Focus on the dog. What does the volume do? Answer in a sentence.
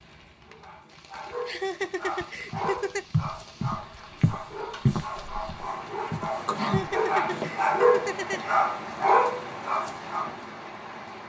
The volume of the dog goes up.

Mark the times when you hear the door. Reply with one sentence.
You can't hear the door here.